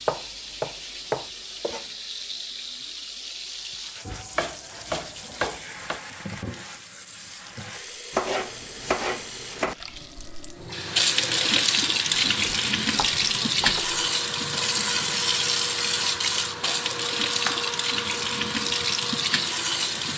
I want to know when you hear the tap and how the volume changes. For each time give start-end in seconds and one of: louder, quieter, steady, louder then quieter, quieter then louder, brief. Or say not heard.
0.0-20.1 louder.